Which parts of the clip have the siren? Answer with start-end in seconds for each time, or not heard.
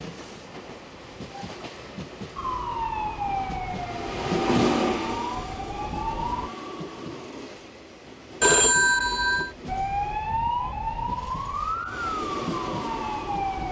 2.4-6.5, 9.7-13.6.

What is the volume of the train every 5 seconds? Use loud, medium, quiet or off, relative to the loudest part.
loud, medium, medium.